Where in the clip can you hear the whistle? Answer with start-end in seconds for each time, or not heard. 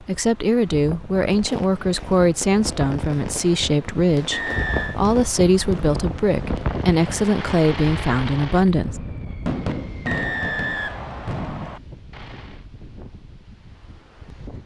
4.3-5.0, 10.1-11.8.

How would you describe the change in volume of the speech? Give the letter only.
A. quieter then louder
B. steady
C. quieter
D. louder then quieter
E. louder
B.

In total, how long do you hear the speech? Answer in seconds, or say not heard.
9 s.